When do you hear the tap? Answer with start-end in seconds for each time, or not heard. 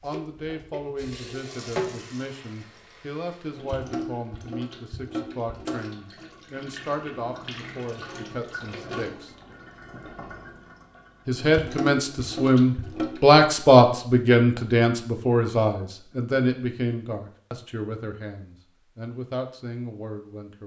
0.0-13.4.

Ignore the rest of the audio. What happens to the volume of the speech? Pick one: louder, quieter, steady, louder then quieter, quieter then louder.
louder then quieter.